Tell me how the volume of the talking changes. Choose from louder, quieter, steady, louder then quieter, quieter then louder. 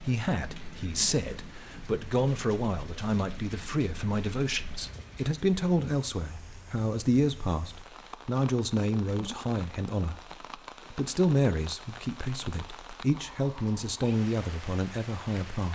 steady.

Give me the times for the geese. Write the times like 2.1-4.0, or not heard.
not heard.